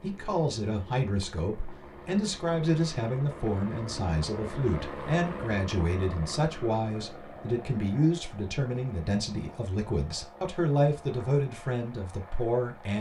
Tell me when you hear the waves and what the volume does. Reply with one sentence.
The waves can't be heard in this clip.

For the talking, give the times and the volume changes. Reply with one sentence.
The talking can be heard from 0.0 to 12.9 s, at a steady volume.